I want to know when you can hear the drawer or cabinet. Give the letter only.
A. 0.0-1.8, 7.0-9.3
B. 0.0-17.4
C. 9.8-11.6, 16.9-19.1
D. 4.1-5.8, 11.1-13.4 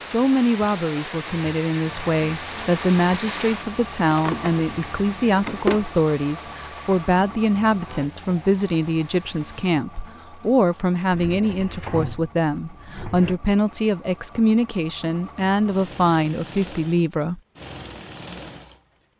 D.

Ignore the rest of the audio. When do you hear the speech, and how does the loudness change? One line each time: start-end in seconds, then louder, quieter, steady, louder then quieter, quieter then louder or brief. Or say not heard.
0.0-17.4 steady.